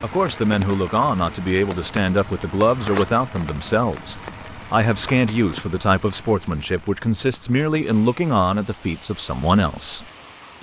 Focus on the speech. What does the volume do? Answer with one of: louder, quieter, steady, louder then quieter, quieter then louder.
steady.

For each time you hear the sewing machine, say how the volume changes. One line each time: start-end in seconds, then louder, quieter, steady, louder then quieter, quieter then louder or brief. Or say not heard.
not heard.